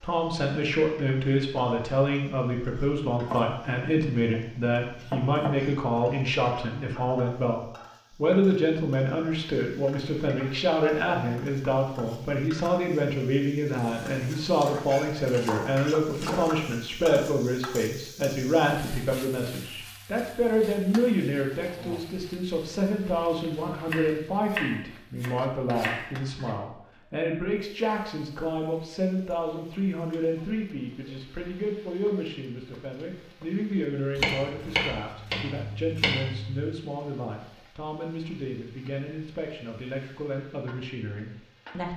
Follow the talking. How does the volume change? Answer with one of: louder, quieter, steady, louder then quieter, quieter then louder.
quieter.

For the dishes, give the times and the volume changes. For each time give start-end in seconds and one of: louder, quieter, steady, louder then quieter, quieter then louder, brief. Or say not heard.
not heard.